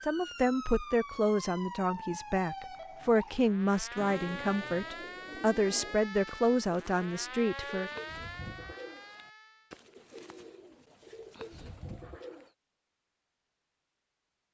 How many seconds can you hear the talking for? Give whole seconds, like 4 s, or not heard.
8 s.